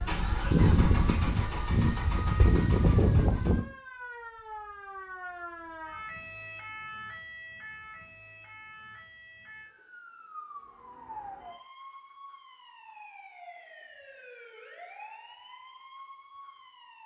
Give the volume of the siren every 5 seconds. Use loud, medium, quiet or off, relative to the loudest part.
loud, loud, loud, medium.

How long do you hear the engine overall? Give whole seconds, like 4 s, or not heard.
4 s.